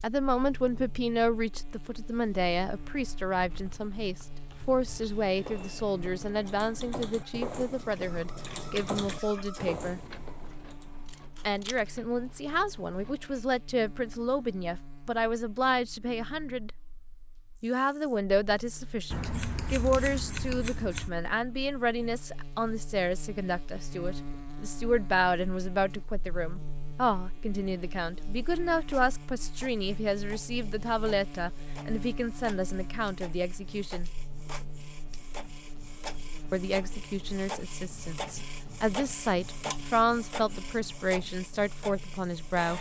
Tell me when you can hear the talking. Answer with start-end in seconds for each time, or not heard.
0.0-10.0, 11.4-16.7, 17.6-34.1, 36.5-42.7.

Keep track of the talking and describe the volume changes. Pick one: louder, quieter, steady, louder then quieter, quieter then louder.
steady.